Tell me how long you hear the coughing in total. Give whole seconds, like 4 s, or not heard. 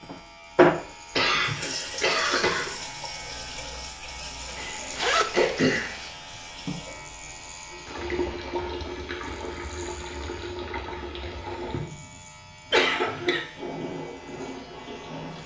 3 s.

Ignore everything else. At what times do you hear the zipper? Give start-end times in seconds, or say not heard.
4.5-6.2.